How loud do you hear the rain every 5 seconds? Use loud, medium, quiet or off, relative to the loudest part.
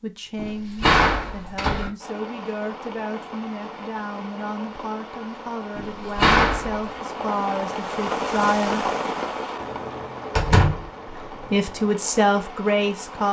medium, loud, medium.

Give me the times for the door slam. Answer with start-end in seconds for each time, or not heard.
0.3-1.9, 5.8-6.8, 10.3-10.9.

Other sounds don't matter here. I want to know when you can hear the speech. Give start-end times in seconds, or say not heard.
0.0-8.9, 11.1-13.2.